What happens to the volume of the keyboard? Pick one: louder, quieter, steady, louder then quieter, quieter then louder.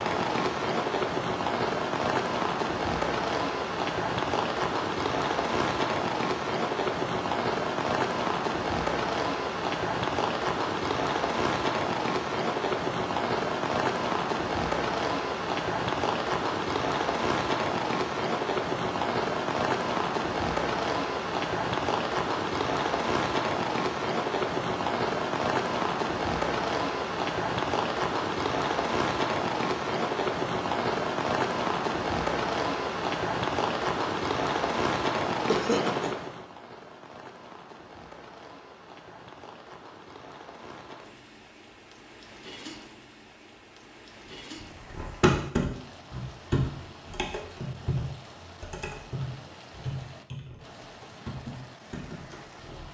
quieter.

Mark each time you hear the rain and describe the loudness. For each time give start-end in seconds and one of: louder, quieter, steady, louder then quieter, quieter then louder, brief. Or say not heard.
0.0-52.8 quieter.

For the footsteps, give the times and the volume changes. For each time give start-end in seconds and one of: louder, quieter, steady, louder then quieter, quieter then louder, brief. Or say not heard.
not heard.